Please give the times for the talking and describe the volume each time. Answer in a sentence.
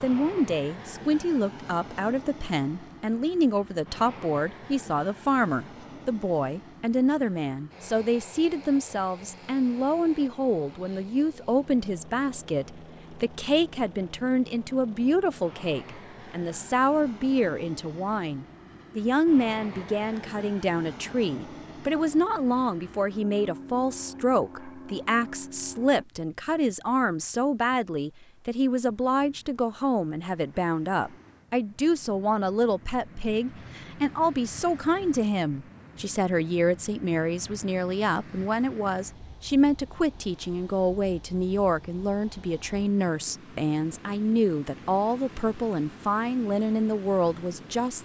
You can hear the talking from 0.0 to 48.0 s, at a steady volume.